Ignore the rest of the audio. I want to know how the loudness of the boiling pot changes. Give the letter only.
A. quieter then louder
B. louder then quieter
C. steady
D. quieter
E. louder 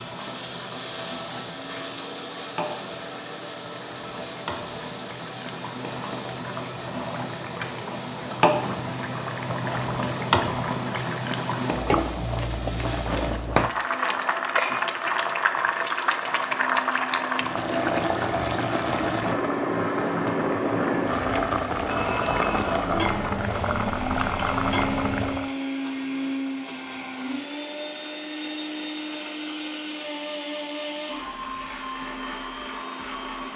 E.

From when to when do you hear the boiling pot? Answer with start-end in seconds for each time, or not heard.
0.0-25.5.